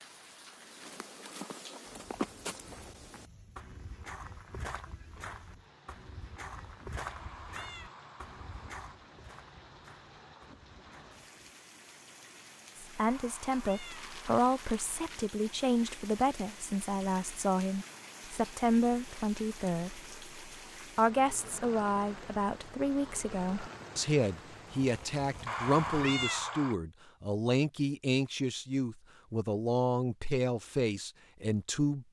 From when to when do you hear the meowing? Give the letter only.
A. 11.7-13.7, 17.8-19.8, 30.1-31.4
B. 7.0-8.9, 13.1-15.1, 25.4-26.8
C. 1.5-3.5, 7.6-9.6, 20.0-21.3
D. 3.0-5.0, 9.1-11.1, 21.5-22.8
B.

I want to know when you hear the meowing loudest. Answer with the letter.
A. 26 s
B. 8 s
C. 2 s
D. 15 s
A.